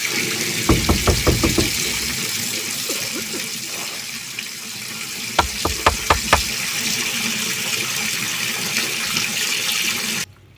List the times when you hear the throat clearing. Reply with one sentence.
You can hear the throat clearing from 2.9 to 4.0 s.